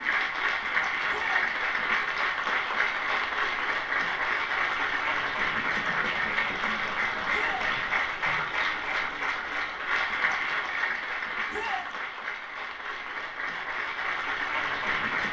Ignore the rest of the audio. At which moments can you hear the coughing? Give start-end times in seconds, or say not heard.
not heard.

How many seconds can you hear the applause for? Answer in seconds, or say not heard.
15 s.